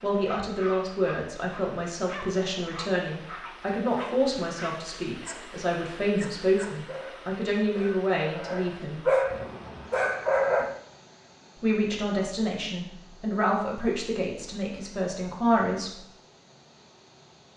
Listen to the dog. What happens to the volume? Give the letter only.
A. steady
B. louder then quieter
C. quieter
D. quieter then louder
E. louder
E.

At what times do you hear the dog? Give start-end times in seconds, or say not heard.
0.2-10.8.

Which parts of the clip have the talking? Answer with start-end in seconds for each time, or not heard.
0.0-9.1, 11.6-16.0.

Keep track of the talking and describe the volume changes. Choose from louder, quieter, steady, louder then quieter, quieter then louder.
steady.